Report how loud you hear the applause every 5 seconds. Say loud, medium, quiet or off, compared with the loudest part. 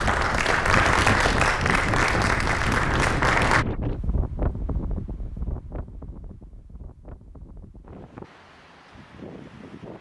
loud, off.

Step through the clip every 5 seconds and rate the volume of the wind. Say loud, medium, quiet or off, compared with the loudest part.
loud, quiet.